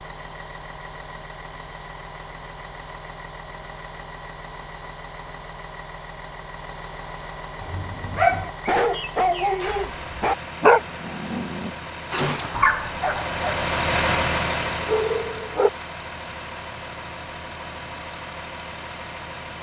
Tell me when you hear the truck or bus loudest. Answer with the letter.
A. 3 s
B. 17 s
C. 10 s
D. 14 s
D.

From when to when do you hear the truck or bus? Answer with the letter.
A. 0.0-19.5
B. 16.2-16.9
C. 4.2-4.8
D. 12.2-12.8
A.